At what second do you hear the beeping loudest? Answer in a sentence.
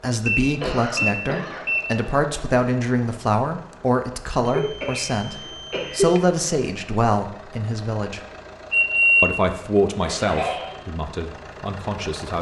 The loudest moment of the beeping is at 9 seconds.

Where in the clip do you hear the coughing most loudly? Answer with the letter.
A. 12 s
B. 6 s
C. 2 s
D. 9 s
B.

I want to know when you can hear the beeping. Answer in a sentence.
The beeping can be heard from 0.2 to 1.8 s, from 4.5 to 6.2 s and from 8.7 to 9.3 s.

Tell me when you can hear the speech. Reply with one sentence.
The speech can be heard from 0.0 to 8.2 s and from 9.2 to 12.3 s.